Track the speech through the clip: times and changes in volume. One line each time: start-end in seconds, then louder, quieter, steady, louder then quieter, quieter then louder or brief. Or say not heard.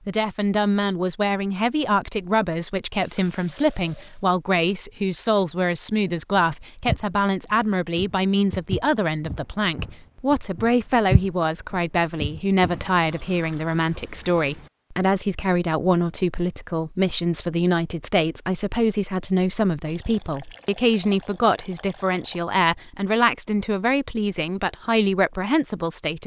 0.1-26.2 steady.